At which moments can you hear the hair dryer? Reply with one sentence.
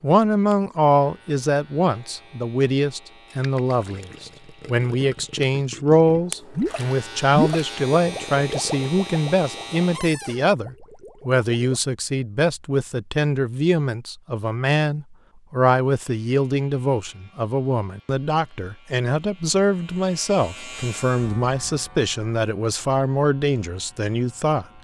The hair dryer can't be heard in this clip.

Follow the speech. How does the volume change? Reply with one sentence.
The loudness of the speech stays about the same.